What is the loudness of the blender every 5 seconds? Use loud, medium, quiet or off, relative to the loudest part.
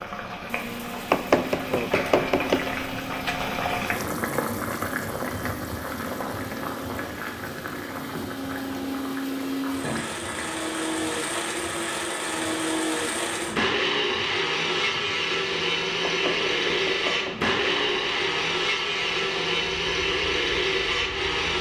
quiet, medium, loud, loud, loud.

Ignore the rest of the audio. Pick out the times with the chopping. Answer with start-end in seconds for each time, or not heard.
1.1-2.6, 16.0-17.5.